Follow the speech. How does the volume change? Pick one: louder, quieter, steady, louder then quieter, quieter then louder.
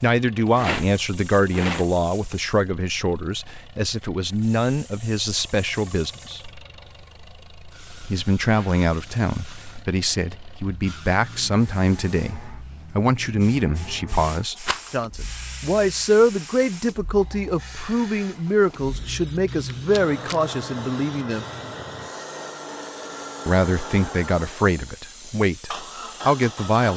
steady.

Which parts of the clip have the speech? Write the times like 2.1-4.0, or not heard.
0.0-6.4, 8.1-21.4, 23.4-26.9.